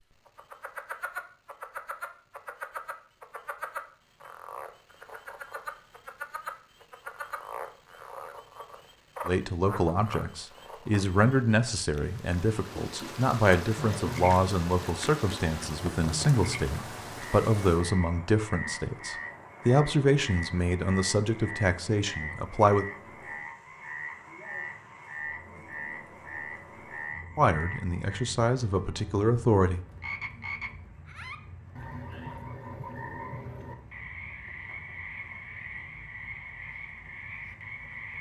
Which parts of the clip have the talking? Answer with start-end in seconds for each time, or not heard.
9.2-22.9, 27.4-29.8.